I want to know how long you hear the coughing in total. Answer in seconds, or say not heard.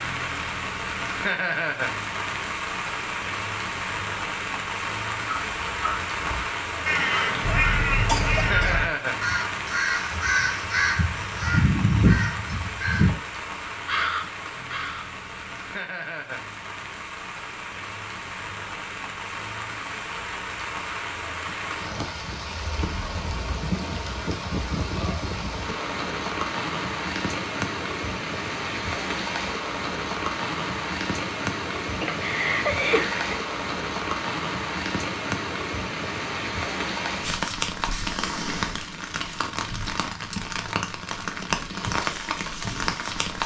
3 s.